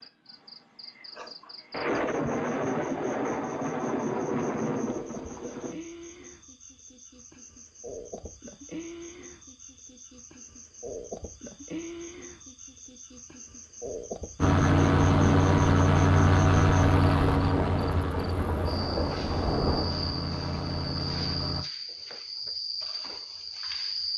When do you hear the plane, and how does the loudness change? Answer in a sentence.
The plane can be heard from 14.3 to 21.6 s, getting quieter.